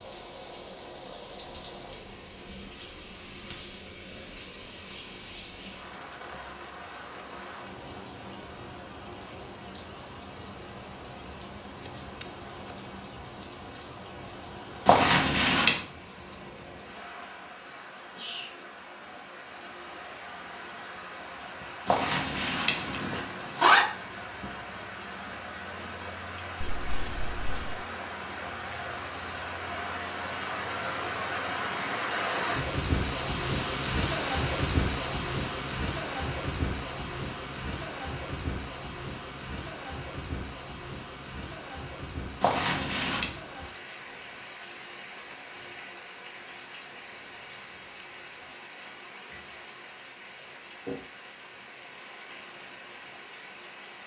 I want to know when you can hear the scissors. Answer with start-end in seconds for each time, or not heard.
11.8-12.8, 26.6-27.9.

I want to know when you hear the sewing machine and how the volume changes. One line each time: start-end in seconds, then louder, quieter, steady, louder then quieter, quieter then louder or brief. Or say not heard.
not heard.